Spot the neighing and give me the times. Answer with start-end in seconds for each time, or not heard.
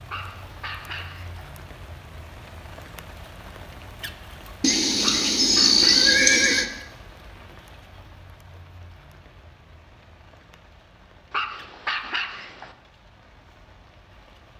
4.6-6.7.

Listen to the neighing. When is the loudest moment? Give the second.
6 s.